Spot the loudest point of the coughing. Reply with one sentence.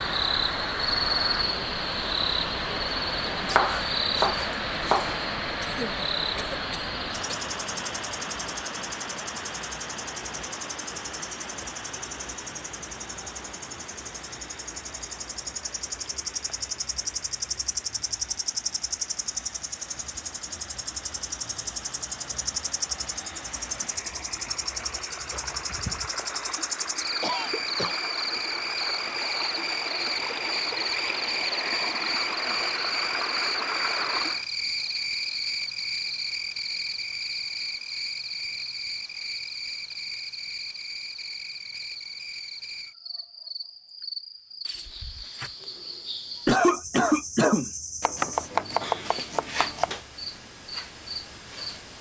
The volume of the coughing peaks at 47 seconds.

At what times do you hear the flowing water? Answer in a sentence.
You can hear the flowing water from 0.0 to 34.5 s.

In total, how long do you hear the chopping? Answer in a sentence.
The chopping can be heard for 4 seconds in total.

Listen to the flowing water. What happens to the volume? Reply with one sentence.
The volume of the flowing water goes down, then up.